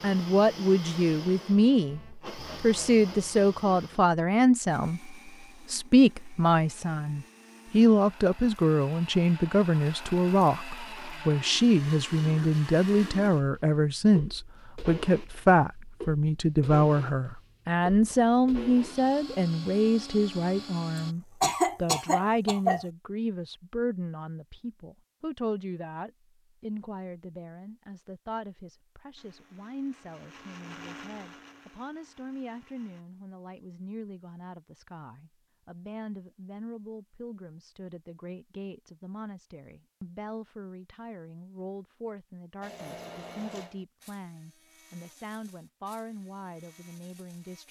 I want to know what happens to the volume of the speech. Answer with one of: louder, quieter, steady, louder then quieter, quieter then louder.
quieter.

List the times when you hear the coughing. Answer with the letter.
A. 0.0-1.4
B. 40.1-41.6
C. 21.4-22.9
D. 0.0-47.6
C.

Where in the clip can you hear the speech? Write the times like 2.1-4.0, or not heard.
0.0-47.6.